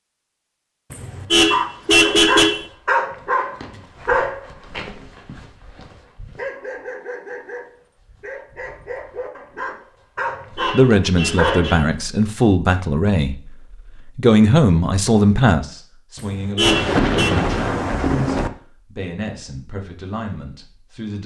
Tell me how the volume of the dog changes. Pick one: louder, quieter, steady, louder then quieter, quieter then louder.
quieter then louder.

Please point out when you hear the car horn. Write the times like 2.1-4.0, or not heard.
0.9-2.6, 10.2-11.9, 16.1-17.4.